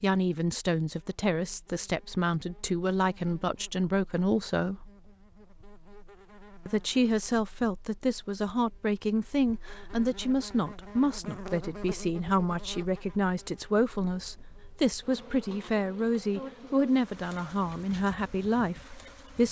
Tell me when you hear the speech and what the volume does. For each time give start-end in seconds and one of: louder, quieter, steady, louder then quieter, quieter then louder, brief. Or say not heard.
0.0-4.9 steady
6.7-19.4 steady.